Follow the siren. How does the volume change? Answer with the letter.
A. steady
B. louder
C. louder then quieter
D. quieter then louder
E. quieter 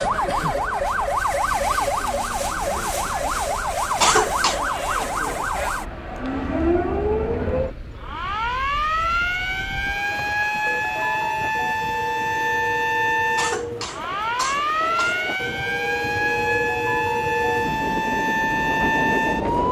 A.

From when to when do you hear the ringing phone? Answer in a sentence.
The ringing phone can't be heard in this clip.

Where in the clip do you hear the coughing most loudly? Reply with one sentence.
The loudest moment of the coughing is at 4 seconds.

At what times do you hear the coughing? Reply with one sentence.
The coughing can be heard from 4.0 to 4.6 s and from 13.3 to 15.2 s.